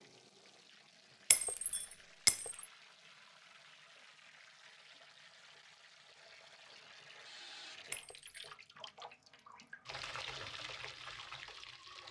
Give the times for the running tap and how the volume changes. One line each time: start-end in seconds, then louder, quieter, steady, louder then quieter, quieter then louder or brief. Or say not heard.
0.0-12.0 louder.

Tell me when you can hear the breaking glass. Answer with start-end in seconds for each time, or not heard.
1.3-2.6, 7.9-8.5.